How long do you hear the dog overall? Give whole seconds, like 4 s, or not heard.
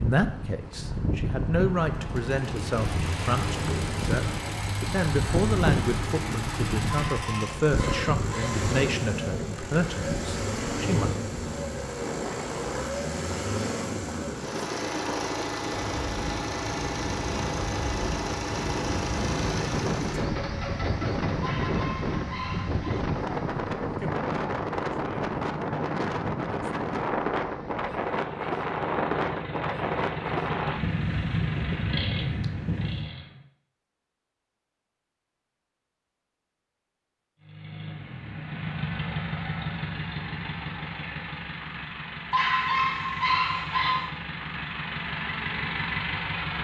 5 s.